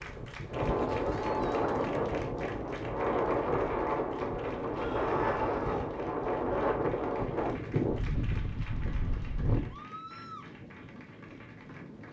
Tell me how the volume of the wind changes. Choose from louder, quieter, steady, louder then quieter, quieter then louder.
quieter.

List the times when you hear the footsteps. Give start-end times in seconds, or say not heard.
not heard.